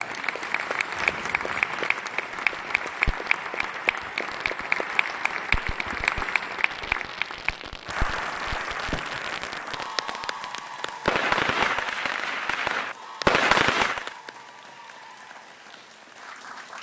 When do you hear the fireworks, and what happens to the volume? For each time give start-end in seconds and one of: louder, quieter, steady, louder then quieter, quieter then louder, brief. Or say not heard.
2.2-14.2 louder.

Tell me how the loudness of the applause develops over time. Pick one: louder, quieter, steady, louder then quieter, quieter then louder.
quieter.